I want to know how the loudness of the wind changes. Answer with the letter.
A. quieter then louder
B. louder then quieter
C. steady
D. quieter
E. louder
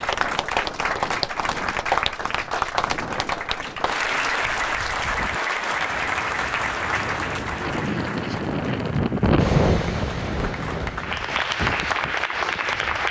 B.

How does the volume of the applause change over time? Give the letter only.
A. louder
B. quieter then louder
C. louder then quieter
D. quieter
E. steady
B.